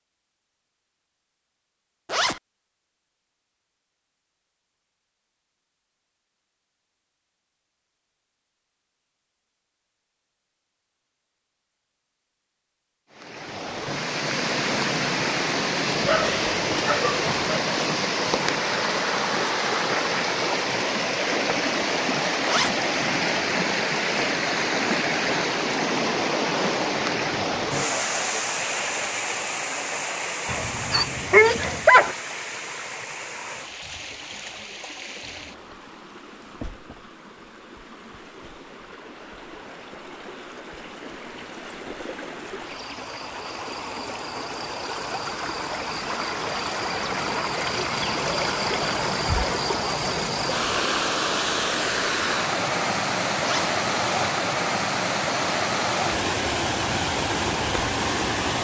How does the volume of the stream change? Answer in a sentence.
The loudness of the stream goes down, then up.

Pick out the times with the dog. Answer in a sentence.
The dog can be heard from 16.0 to 17.6 s and from 30.4 to 32.1 s.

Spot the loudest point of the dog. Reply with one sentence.
The volume of the dog peaks at 32 seconds.